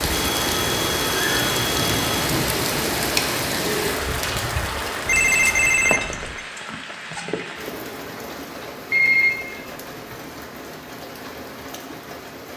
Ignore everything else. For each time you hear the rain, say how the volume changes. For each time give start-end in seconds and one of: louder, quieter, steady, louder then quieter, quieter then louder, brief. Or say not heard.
0.0-12.5 quieter.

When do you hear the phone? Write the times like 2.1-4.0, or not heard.
0.1-2.3, 5.0-6.4, 8.9-10.2.